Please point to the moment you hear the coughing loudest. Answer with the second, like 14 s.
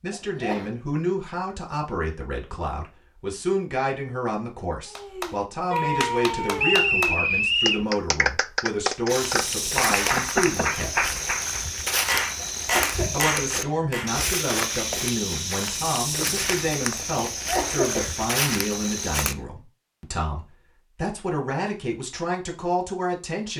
18 s.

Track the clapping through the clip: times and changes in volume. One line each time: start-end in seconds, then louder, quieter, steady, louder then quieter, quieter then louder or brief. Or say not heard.
4.9-14.2 steady.